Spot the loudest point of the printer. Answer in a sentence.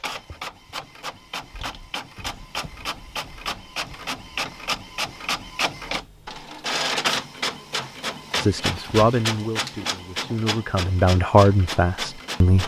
The volume of the printer peaks at 7 seconds.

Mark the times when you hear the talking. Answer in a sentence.
The talking can be heard from 8.4 to 12.6 s.